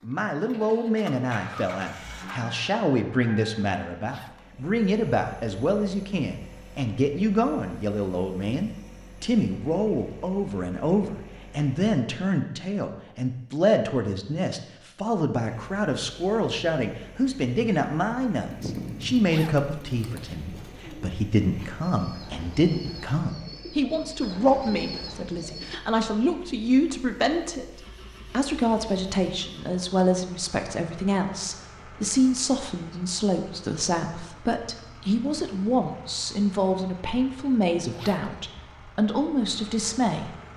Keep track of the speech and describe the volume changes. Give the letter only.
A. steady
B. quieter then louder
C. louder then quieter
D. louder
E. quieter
A.